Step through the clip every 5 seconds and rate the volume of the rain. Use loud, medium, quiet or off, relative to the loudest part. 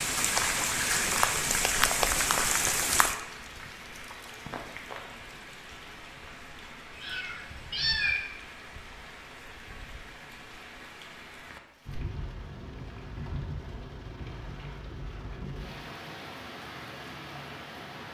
loud, quiet, quiet, quiet.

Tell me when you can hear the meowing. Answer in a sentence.
You can hear the meowing from 7.0 to 8.2 s.